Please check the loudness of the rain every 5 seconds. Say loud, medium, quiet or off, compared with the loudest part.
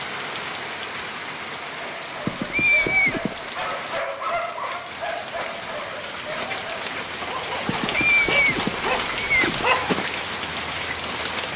medium, loud, loud.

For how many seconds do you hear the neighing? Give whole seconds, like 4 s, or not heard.
3 s.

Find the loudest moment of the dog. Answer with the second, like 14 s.
10 s.